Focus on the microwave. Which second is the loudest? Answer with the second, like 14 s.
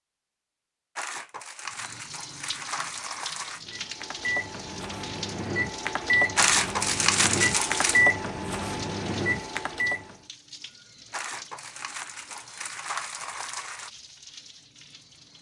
8 s.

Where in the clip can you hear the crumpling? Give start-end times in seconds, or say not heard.
0.9-3.6, 6.3-8.1, 11.1-13.9.